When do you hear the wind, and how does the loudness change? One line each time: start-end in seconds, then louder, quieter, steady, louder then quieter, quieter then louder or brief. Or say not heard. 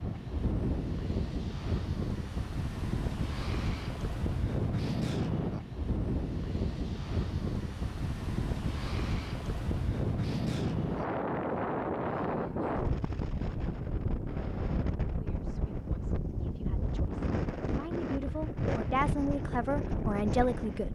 0.0-20.8 steady.